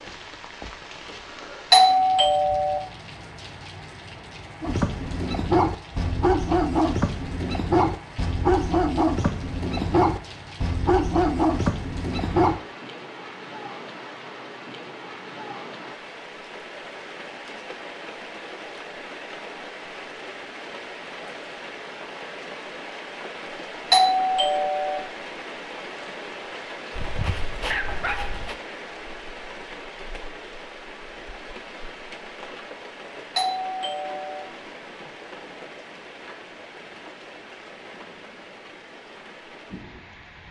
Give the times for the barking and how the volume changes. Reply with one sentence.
You can hear the barking from 4.6 to 12.6 s, at a steady volume; and briefly from 26.9 to 28.6 s.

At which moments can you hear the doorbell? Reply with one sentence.
The doorbell can be heard from 1.7 to 2.8 s, from 23.9 to 25.0 s and from 33.4 to 34.5 s.